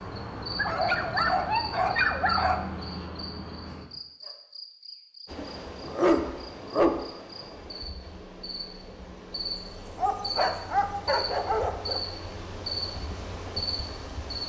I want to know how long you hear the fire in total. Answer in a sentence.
The fire can't be heard in this clip.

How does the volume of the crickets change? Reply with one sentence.
The loudness of the crickets goes down, then up.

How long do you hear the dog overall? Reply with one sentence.
The dog can be heard for 6 seconds in total.